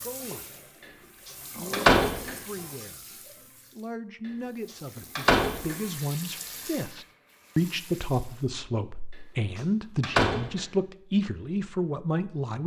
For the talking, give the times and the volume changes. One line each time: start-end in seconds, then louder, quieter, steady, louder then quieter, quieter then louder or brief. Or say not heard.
0.0-0.6 brief
1.5-12.6 louder.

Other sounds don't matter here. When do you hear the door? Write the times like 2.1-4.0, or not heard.
1.7-2.4, 5.2-5.8, 10.0-10.6.